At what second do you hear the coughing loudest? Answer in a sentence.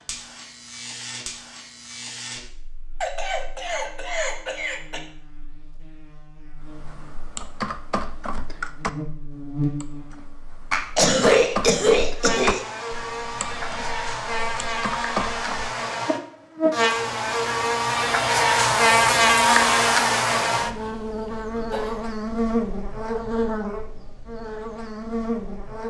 The volume of the coughing peaks at 11 seconds.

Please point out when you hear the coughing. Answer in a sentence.
The coughing can be heard from 3.0 to 5.0 s, from 10.7 to 12.6 s and from 21.6 to 22.1 s.